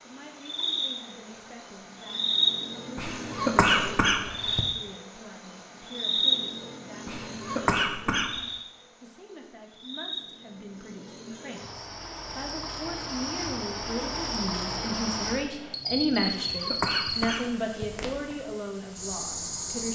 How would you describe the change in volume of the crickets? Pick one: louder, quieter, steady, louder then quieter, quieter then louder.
quieter then louder.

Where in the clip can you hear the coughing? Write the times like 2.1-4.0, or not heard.
3.0-4.6, 7.0-8.4, 16.2-17.9.